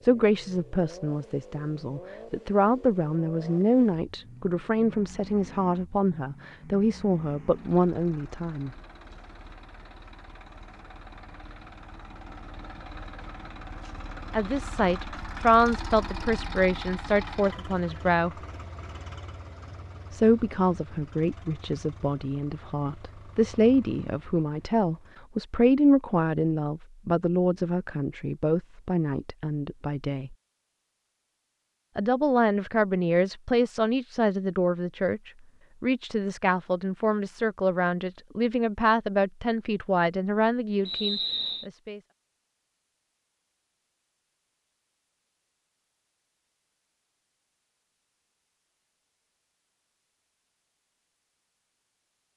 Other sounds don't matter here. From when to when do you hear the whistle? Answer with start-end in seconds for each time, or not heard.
40.9-41.6.